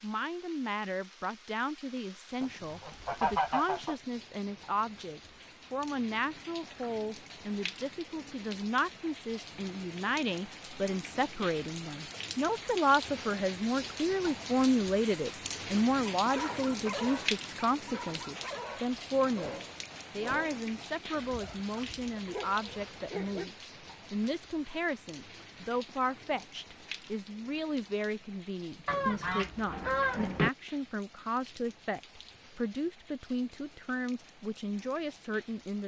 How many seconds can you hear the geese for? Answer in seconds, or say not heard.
3 s.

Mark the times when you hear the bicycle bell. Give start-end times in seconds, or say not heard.
not heard.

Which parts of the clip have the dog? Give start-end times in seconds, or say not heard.
16.1-23.4.